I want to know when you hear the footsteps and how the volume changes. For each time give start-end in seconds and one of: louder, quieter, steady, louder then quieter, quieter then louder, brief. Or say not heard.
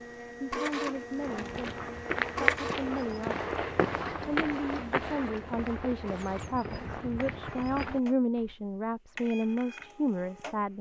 1.1-8.6 quieter.